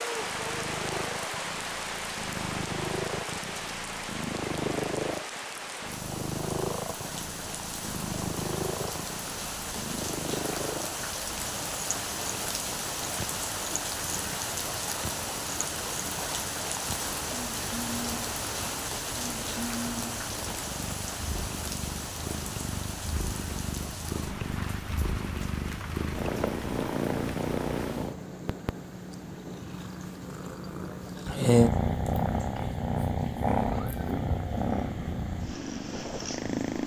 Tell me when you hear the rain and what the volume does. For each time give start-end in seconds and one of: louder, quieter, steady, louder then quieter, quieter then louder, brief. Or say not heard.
0.0-36.8 quieter.